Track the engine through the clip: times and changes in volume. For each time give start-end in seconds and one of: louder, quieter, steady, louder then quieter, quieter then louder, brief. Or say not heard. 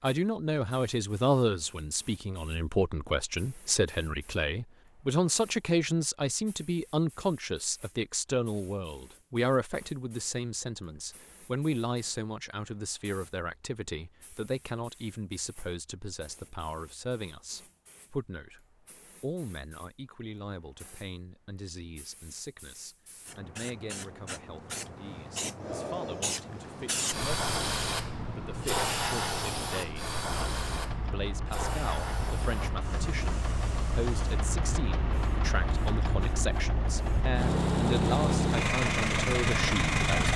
30.5-40.3 louder.